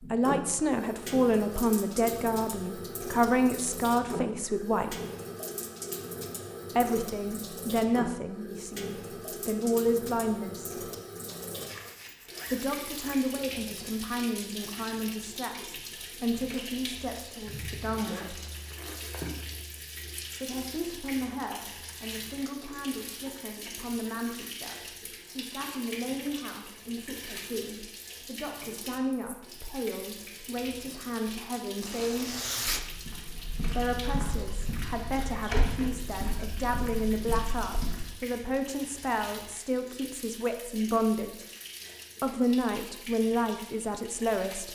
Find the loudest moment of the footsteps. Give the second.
36 s.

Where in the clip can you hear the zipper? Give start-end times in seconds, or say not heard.
11.2-13.3, 17.9-19.5, 31.8-32.9.